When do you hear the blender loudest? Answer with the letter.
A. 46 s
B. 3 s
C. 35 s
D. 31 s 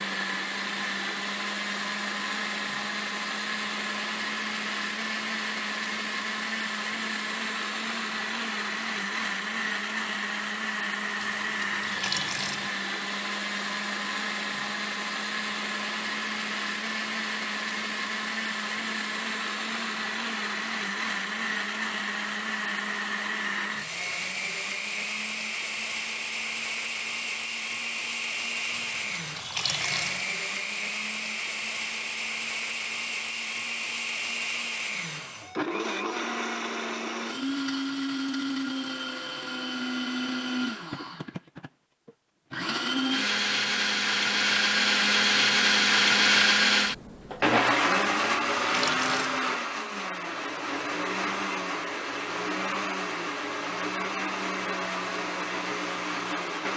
A.